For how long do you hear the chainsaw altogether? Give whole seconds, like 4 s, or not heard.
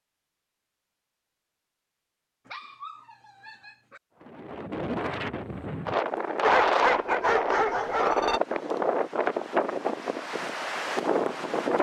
not heard.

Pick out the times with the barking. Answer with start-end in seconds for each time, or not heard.
2.5-4.0, 6.4-8.4.